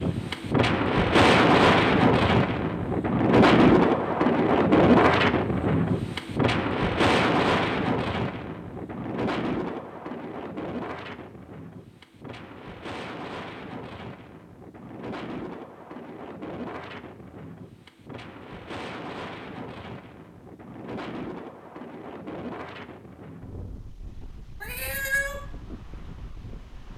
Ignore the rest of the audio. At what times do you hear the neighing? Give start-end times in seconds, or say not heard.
not heard.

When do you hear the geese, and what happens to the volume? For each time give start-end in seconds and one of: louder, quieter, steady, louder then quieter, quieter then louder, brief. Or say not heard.
not heard.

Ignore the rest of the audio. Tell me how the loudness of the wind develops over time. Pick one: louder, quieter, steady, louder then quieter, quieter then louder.
quieter.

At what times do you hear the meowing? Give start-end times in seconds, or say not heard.
24.6-25.4.